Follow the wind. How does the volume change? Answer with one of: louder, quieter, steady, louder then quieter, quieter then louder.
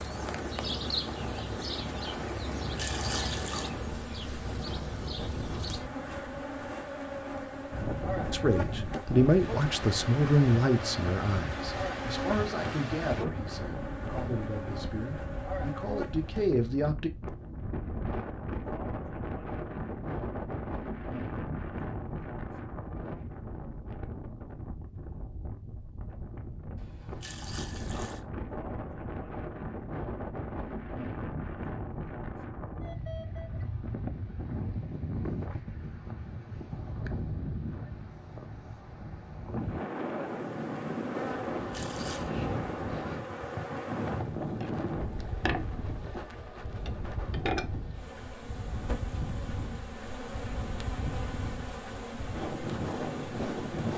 steady.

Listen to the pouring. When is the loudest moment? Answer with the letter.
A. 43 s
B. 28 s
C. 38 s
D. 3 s
D.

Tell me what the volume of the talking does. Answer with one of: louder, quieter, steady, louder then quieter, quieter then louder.
quieter then louder.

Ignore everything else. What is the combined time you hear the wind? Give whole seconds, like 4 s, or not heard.
54 s.